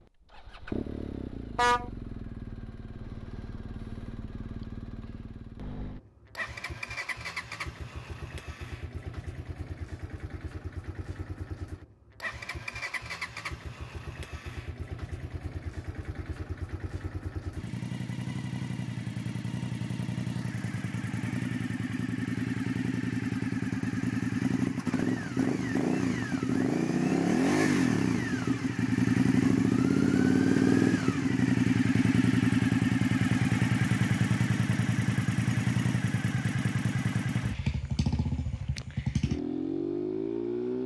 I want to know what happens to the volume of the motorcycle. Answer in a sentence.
The volume of the motorcycle goes up.